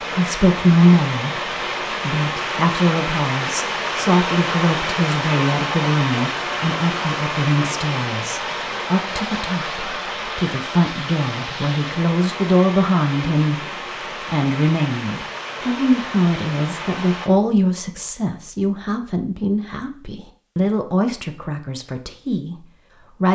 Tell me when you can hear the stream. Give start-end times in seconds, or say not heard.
0.0-17.3.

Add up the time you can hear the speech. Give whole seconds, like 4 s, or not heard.
23 s.